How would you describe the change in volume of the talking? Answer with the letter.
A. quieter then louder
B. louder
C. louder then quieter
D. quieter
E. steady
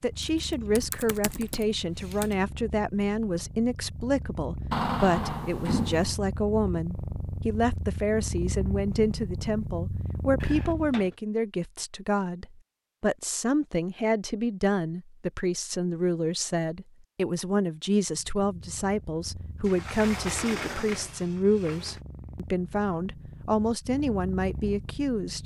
E.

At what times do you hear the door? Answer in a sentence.
The door can be heard from 4.7 to 6.2 s, from 10.4 to 11.2 s and from 19.6 to 22.0 s.